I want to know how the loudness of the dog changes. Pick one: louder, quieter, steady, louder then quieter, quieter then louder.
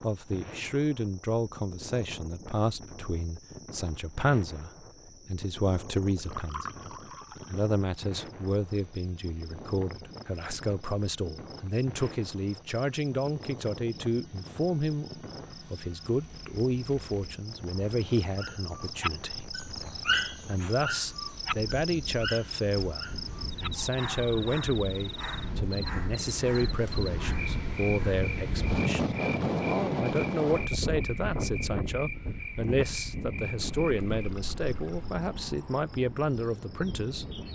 quieter.